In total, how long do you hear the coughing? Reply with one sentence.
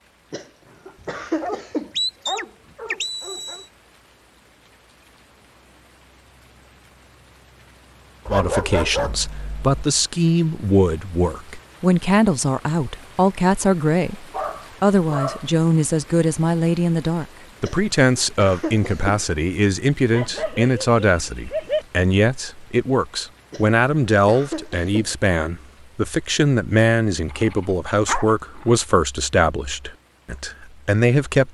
You can hear the coughing for 5 seconds altogether.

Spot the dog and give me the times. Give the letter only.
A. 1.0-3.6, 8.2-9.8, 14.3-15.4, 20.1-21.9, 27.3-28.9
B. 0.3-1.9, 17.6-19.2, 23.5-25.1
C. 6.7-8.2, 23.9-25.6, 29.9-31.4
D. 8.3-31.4
A.